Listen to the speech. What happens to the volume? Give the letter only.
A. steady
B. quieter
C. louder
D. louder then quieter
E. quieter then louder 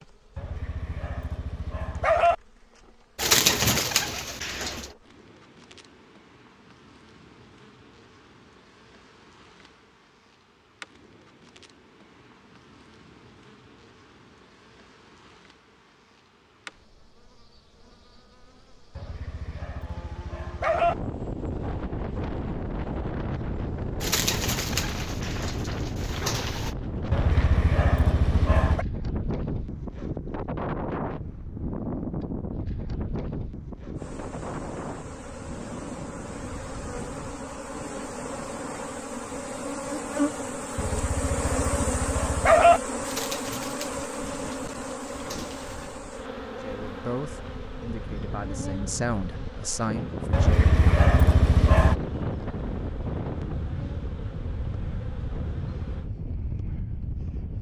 E.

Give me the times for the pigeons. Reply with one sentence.
You can hear the pigeons from 3.1 to 4.9 s, from 24.0 to 26.8 s and from 43.0 to 46.0 s.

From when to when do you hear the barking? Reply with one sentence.
The barking can be heard from 0.3 to 2.4 s, from 18.9 to 20.9 s, from 27.1 to 28.9 s, from 40.8 to 42.8 s and from 50.3 to 52.0 s.